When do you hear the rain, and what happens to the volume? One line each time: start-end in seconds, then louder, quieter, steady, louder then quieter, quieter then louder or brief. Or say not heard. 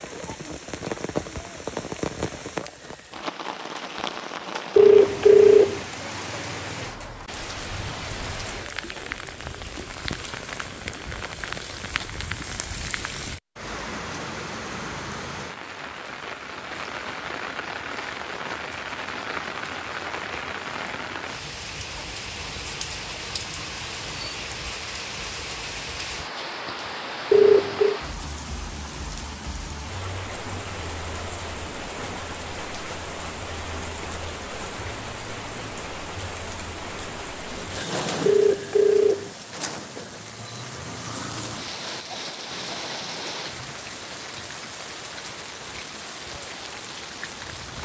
0.0-47.8 steady.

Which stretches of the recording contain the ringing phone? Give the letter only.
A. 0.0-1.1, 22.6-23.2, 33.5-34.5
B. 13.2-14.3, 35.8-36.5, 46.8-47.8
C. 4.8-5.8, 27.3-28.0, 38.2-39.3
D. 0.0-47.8
C.